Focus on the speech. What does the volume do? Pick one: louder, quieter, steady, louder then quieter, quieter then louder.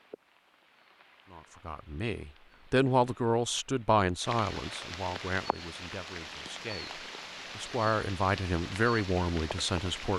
quieter then louder.